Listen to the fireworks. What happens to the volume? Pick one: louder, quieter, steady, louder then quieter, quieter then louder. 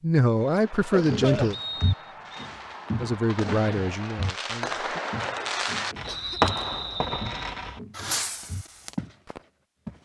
louder then quieter.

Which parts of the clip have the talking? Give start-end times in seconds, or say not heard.
0.0-1.6, 3.0-4.9.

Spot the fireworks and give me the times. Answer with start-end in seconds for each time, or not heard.
0.3-9.4.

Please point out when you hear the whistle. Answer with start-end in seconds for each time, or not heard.
1.5-2.5, 6.0-7.3.